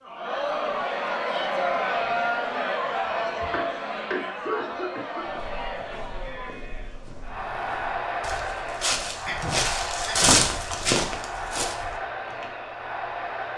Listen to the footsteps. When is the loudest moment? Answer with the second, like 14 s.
10 s.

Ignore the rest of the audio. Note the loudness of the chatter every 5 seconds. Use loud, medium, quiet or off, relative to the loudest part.
loud, medium, medium.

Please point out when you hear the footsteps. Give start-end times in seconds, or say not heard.
5.2-12.4.